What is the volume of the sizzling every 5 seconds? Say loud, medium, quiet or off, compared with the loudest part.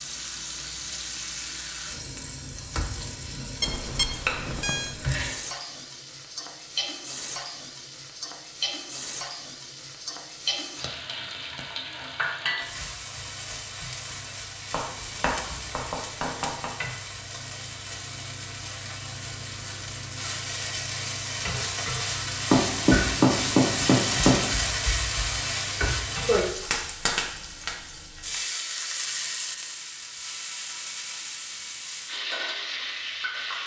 medium, medium, medium, medium, loud, loud, medium.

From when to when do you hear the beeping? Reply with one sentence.
The beeping can be heard from 3.6 to 5.0 s.